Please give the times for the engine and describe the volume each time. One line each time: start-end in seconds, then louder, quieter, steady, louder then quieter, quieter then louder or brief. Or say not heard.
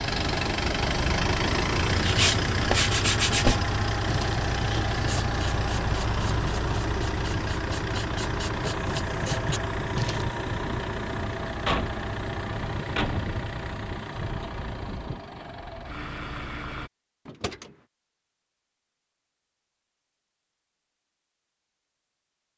0.0-16.9 quieter.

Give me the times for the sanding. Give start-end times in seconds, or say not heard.
1.9-10.3.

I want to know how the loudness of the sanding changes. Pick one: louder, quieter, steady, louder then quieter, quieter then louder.
quieter then louder.